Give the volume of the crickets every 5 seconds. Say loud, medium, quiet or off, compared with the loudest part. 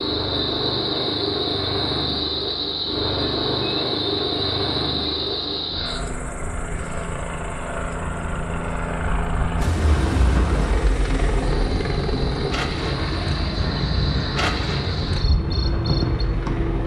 loud, medium, loud, loud.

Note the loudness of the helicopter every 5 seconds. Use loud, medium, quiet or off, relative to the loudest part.
loud, loud, loud, medium.